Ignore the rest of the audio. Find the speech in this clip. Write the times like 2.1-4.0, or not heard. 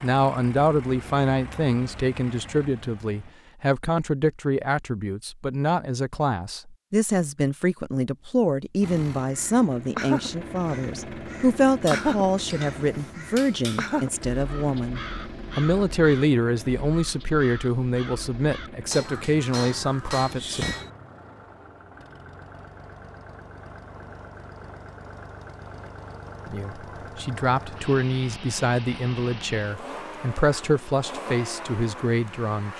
0.0-20.6, 26.4-32.7.